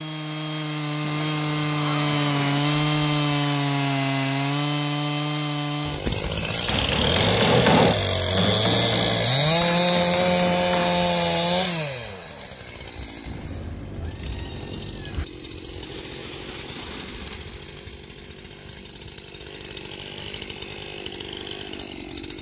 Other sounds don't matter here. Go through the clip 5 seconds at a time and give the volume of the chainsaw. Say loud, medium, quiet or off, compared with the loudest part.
loud, loud, loud, quiet, quiet.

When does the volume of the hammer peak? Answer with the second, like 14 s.
8 s.